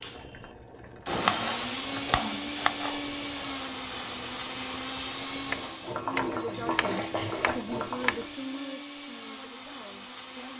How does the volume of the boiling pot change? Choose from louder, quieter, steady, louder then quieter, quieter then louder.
louder.